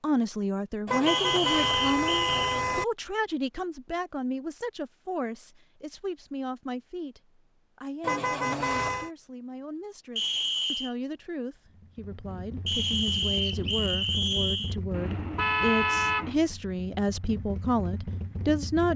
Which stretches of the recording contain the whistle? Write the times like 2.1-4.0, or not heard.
1.1-2.5, 10.2-10.9, 12.7-14.8.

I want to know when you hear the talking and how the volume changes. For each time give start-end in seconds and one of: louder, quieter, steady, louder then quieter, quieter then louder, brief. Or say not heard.
0.0-18.9 quieter then louder.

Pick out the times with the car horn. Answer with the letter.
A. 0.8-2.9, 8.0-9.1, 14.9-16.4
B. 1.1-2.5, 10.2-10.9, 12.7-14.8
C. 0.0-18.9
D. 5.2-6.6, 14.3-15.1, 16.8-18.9
A.